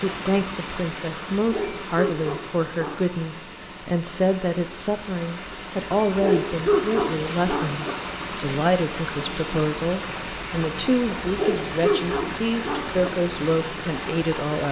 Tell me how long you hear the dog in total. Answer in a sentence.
You can hear the dog for 5 seconds altogether.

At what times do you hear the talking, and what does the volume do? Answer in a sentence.
The talking can be heard from 0.0 to 14.6 s, at a steady volume.